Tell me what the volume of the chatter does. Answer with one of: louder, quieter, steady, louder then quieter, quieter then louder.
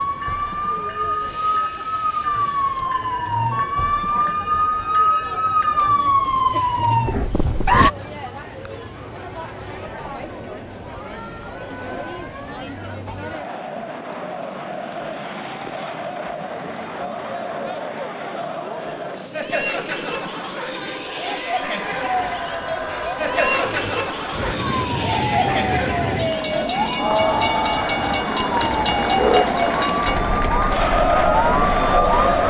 louder.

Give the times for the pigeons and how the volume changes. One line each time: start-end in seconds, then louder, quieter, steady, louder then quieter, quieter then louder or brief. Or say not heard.
not heard.